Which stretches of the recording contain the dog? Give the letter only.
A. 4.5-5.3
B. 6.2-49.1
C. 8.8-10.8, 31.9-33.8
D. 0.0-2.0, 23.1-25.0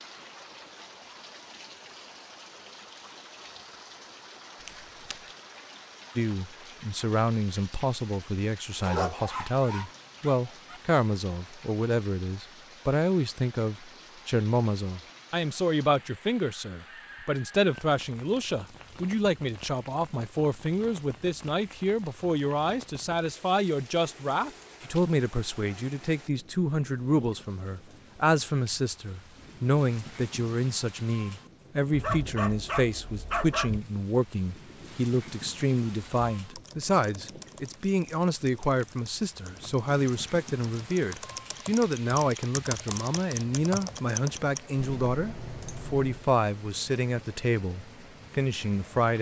C.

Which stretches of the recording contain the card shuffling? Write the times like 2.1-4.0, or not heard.
4.5-5.3.